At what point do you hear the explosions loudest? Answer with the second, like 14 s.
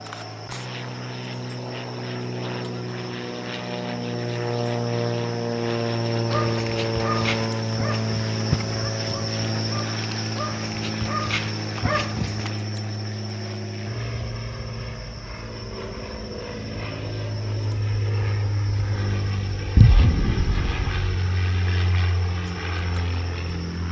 20 s.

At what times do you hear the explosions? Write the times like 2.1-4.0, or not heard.
19.8-21.2.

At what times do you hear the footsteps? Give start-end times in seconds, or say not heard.
not heard.